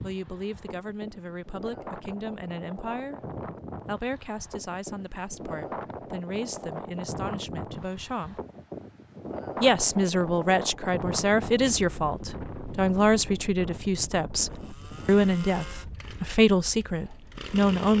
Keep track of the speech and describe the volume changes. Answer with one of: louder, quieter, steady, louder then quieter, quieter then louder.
louder.